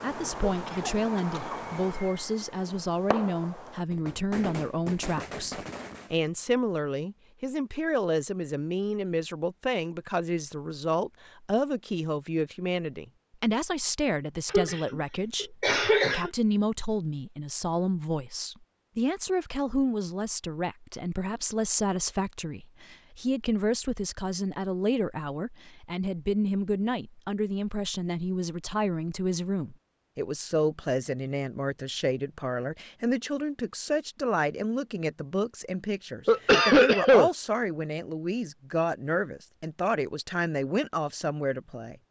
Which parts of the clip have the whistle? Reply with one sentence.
The whistle can't be heard in this clip.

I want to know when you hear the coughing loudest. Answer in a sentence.
The volume of the coughing peaks at 37 seconds.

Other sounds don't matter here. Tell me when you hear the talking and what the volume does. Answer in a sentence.
You can hear the talking from 0.0 to 42.0 s, at a steady volume.